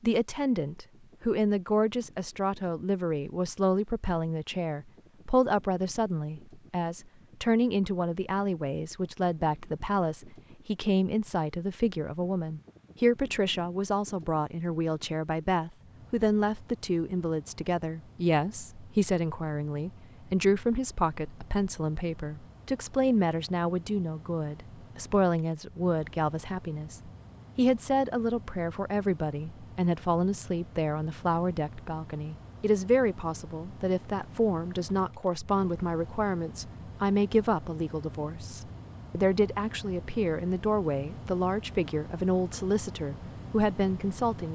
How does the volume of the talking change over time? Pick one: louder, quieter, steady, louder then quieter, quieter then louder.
steady.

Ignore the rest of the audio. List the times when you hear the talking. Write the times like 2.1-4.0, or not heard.
0.0-44.5.